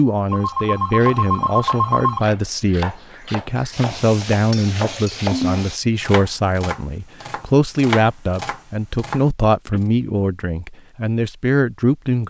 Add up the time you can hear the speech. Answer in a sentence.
You can hear the speech for 12 seconds altogether.